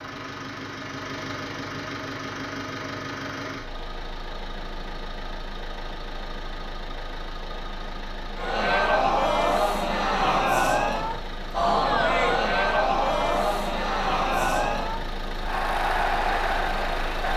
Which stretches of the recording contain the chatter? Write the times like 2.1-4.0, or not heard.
8.3-17.3.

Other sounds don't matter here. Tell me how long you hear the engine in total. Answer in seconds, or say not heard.
17 s.